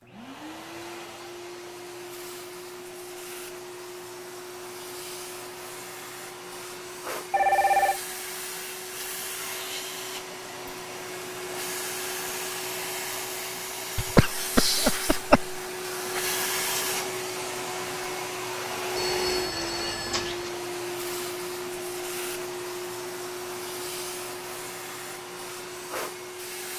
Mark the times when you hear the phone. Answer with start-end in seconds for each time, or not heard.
7.3-8.0, 18.9-20.5.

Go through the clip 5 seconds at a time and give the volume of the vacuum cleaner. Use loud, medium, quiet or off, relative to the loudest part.
medium, medium, loud, loud, loud, medium.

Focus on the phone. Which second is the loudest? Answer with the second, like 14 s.
8 s.